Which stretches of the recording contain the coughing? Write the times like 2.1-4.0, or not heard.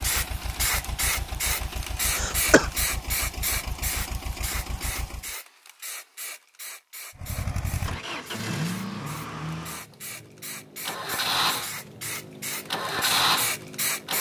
2.1-2.7.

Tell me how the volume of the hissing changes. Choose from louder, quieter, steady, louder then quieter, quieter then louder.
quieter then louder.